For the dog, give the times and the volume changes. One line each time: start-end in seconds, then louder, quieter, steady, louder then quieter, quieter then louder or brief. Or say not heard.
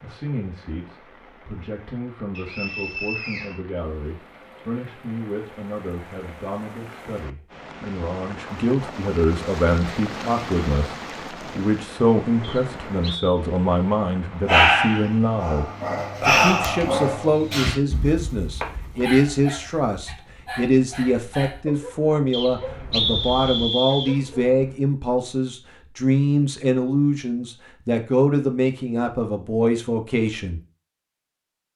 14.4-24.8 quieter.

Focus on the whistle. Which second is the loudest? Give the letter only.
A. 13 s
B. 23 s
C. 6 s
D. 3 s
B.